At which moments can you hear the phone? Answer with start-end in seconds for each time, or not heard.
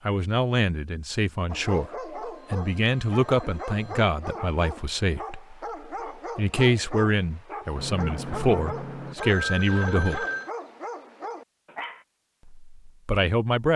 2.2-4.0, 7.8-10.5.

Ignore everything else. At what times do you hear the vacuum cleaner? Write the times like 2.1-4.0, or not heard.
not heard.